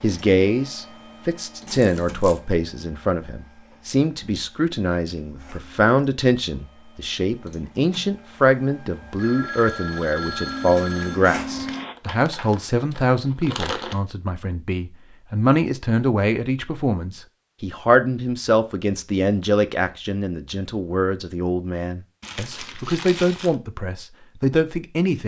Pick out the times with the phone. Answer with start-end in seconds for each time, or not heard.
9.2-11.2.